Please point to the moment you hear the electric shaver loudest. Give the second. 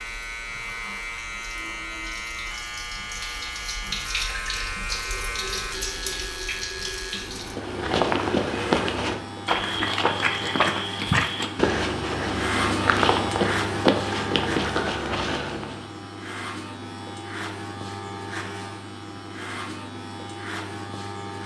13 s.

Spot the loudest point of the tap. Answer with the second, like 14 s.
4 s.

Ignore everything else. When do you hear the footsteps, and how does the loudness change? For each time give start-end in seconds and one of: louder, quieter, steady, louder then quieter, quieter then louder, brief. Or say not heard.
7.4-15.8 steady.